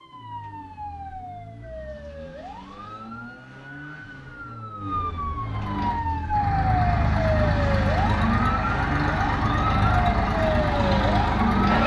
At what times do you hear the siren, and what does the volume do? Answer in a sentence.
The siren can be heard from 0.0 to 11.8 s, getting louder.